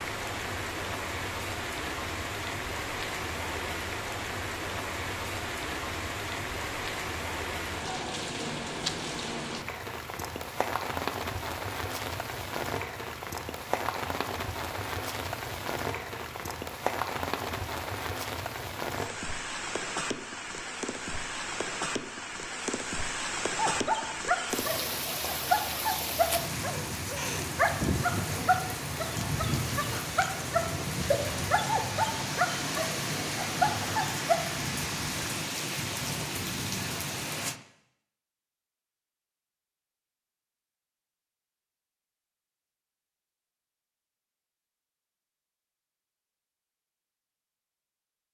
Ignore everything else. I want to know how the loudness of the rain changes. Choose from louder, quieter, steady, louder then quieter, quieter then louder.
steady.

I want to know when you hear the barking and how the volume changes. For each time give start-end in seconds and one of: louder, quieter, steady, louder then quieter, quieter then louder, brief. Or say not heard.
23.5-34.4 steady.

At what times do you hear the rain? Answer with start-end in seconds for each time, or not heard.
0.0-37.6.